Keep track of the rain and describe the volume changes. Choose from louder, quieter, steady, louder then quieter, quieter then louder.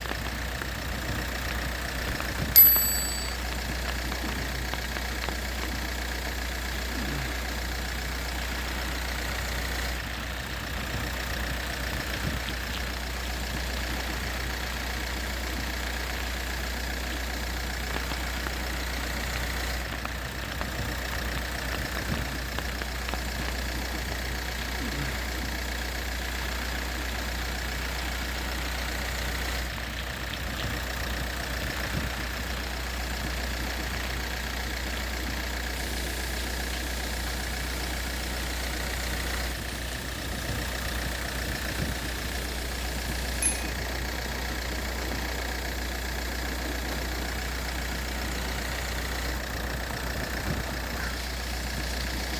steady.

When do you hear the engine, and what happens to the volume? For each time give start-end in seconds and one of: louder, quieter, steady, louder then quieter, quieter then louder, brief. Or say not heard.
0.0-52.3 steady.